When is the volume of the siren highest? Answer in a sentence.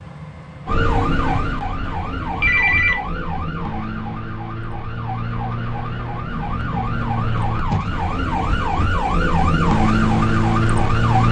The loudest moment of the siren is at 10 seconds.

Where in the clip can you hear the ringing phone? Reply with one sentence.
You can hear the ringing phone from 2.4 to 3.0 s.